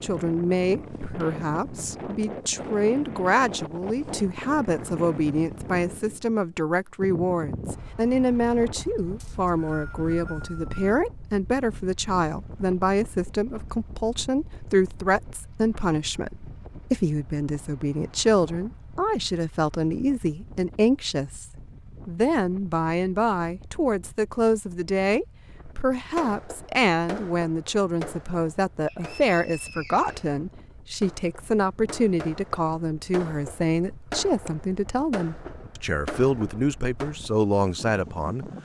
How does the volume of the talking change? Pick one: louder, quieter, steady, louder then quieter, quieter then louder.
steady.